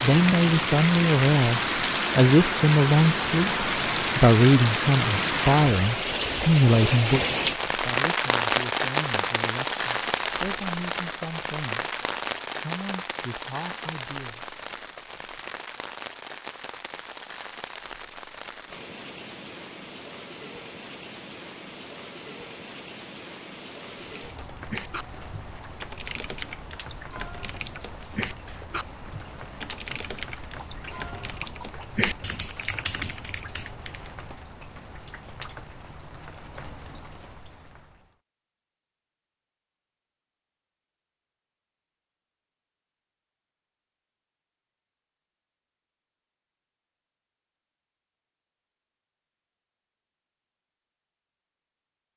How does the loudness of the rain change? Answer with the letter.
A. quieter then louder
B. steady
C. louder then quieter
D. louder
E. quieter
E.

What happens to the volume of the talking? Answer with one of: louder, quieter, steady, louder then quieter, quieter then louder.
quieter.